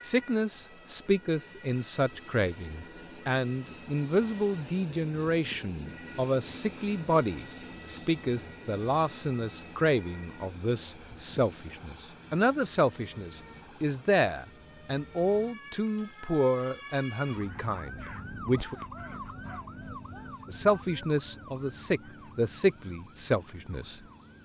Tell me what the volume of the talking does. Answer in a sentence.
The volume of the talking stays about the same.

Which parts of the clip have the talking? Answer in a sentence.
The talking can be heard from 0.0 to 18.8 s and from 20.4 to 24.0 s.